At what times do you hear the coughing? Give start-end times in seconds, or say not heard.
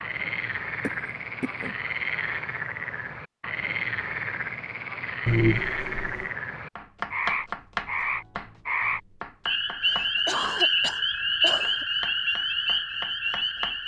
0.8-1.8, 5.2-6.3, 9.8-11.8.